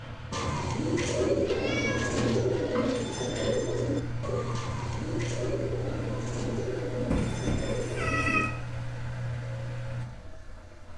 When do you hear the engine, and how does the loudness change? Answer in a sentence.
The engine can be heard from 0.0 to 10.9 s, at a steady volume.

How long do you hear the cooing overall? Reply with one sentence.
The cooing can be heard for 8 seconds in total.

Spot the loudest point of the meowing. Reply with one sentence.
The volume of the meowing peaks at 8 seconds.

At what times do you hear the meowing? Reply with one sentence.
The meowing can be heard from 1.4 to 3.7 s and from 7.1 to 8.5 s.